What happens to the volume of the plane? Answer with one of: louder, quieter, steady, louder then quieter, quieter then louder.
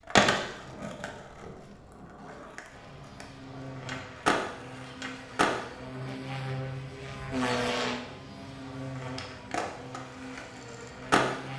louder then quieter.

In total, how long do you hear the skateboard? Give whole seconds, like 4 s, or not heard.
8 s.